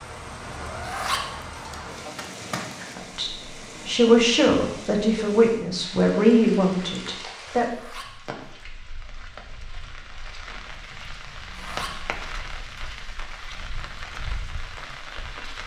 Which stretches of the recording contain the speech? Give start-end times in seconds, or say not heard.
3.0-7.7.